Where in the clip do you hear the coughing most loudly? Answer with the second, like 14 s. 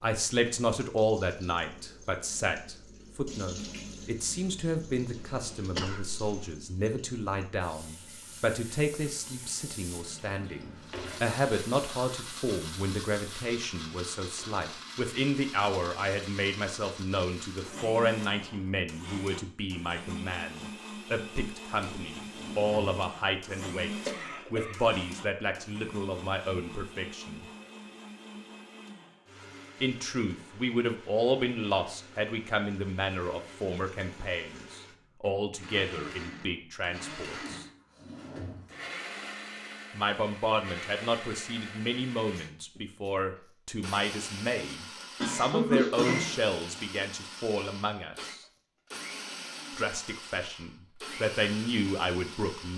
46 s.